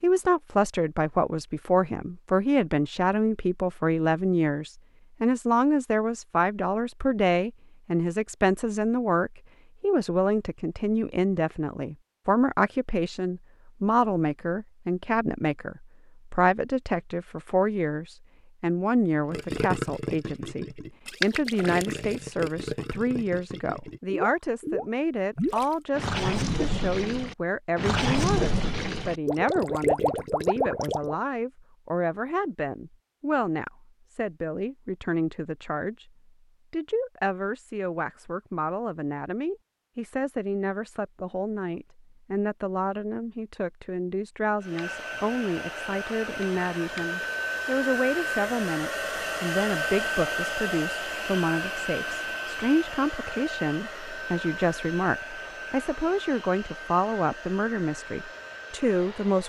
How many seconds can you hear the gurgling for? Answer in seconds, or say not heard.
12 s.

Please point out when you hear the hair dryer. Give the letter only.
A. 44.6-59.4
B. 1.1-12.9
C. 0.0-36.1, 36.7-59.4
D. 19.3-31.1
A.